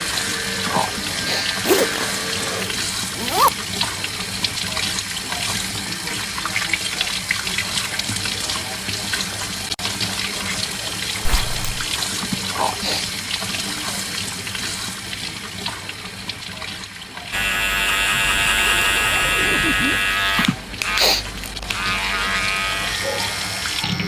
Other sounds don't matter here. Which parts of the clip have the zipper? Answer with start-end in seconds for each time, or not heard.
1.6-3.5, 11.2-11.8, 18.1-20.0.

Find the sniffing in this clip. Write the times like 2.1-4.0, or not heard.
0.7-1.5, 12.2-13.1, 20.4-21.2.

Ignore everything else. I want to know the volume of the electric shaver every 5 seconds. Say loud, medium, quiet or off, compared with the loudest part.
medium, off, off, loud, medium.